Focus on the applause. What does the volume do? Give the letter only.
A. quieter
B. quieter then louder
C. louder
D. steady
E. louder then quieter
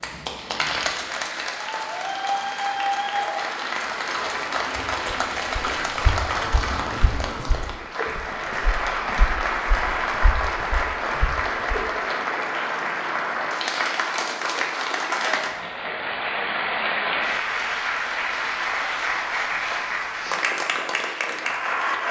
D.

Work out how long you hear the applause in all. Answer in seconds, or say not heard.
22 s.